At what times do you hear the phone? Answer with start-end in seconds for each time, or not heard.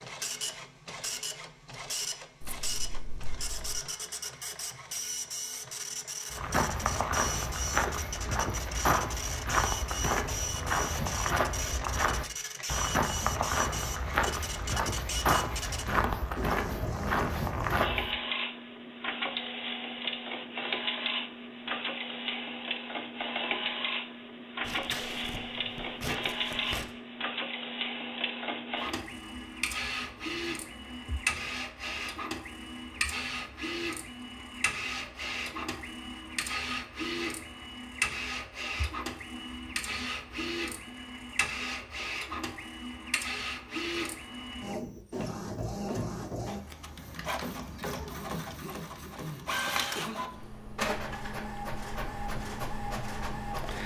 not heard.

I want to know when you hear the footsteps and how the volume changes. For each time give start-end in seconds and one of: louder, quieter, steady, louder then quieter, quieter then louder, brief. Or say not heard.
6.3-18.1 steady.